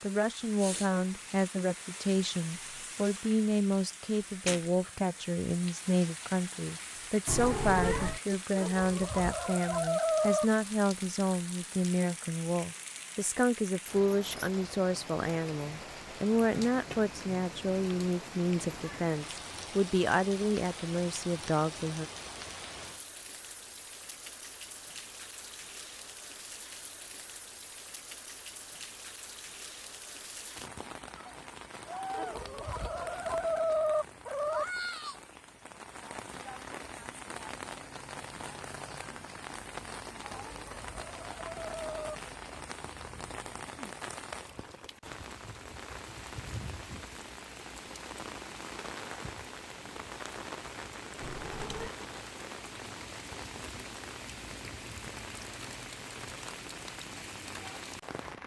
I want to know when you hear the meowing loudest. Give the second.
8 s.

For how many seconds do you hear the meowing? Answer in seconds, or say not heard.
2 s.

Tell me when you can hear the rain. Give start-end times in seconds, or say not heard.
0.0-58.4.